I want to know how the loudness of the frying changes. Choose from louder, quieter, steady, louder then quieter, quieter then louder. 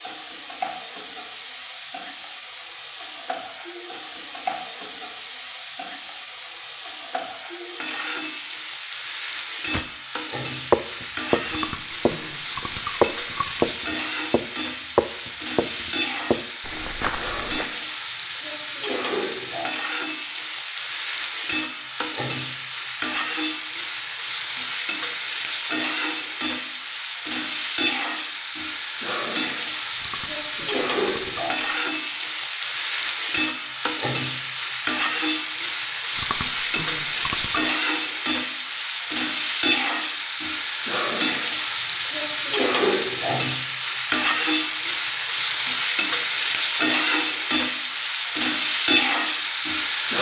louder.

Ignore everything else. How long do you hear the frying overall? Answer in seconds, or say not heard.
50 s.